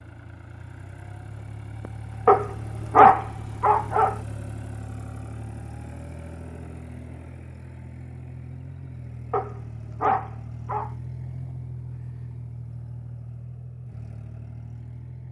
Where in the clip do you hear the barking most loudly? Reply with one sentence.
The volume of the barking peaks at 3 seconds.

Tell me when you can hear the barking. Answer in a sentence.
You can hear the barking from 2.2 to 4.2 s and from 9.3 to 10.9 s.